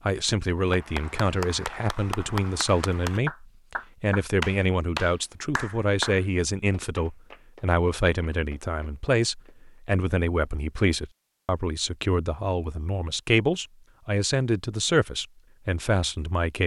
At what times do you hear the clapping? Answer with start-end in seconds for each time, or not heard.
0.7-9.8.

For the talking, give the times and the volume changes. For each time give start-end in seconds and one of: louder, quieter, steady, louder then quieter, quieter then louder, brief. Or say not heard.
0.1-16.6 steady.